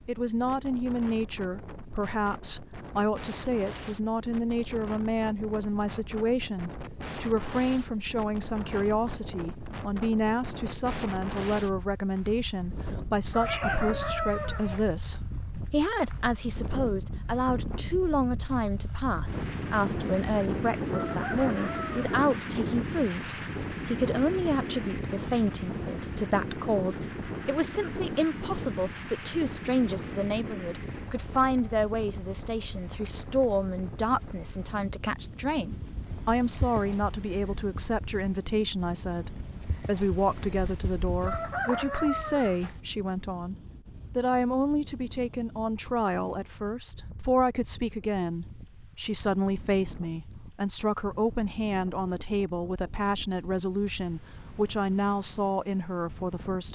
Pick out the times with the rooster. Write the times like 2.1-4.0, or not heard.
13.3-14.8, 20.9-22.1, 41.2-42.8.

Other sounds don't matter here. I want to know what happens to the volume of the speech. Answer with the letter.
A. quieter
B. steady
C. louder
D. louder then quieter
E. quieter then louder
B.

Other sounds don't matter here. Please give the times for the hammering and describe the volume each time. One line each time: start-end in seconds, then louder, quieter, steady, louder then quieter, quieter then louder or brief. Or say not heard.
not heard.